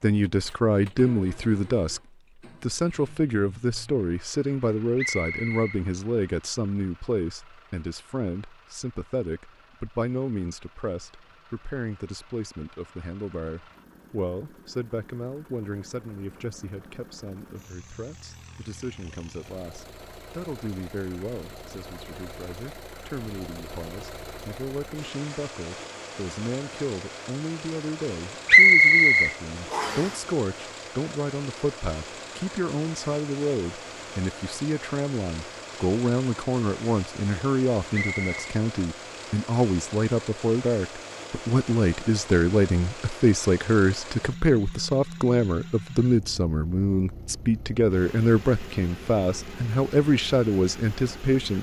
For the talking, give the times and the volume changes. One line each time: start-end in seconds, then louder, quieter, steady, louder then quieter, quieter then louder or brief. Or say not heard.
0.0-2.0 brief
2.6-51.5 quieter then louder.